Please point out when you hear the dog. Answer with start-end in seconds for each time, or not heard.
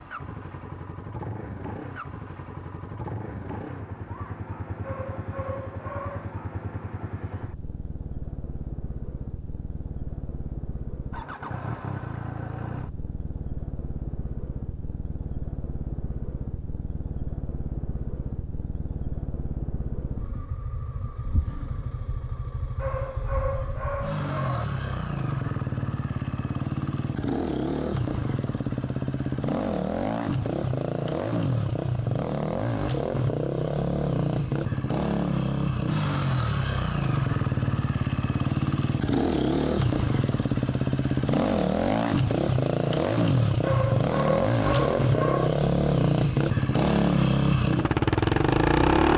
4.8-6.3, 22.8-24.6, 43.6-45.5.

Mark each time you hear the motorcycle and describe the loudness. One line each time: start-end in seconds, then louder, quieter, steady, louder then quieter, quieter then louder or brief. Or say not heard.
0.0-49.1 louder.